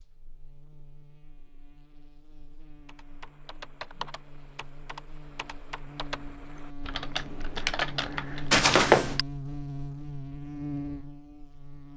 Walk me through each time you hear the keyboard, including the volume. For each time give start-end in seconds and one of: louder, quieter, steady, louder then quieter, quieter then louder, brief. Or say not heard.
2.9-8.7 quieter then louder.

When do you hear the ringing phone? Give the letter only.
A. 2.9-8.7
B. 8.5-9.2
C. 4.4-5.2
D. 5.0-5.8
B.